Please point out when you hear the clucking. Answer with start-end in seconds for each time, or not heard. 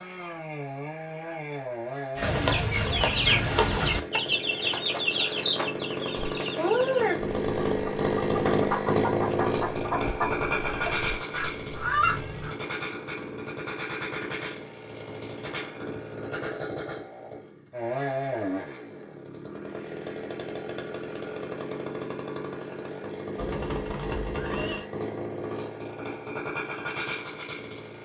2.1-12.6.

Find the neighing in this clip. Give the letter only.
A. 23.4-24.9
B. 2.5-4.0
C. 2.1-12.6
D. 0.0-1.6
A.